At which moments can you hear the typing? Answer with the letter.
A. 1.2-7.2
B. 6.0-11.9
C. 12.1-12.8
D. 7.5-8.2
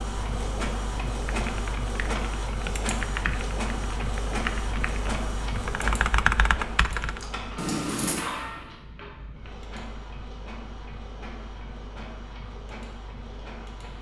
A.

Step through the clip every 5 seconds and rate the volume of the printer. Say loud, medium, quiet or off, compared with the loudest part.
loud, loud, medium.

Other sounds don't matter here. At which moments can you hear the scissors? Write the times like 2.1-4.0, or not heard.
7.5-8.2.